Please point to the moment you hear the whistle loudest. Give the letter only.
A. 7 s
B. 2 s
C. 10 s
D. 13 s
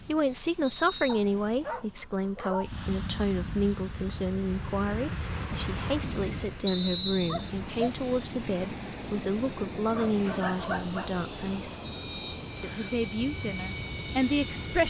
A.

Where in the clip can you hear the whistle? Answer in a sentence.
You can hear the whistle from 0.6 to 1.2 s, from 6.7 to 7.5 s and from 11.8 to 12.9 s.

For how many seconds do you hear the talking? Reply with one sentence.
The talking can be heard for 14 seconds in total.